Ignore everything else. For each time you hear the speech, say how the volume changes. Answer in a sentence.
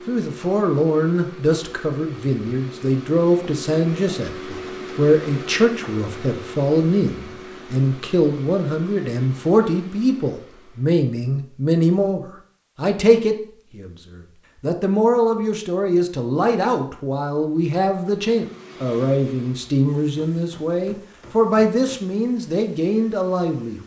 You can hear the speech from 0.1 to 23.8 s, at a steady volume.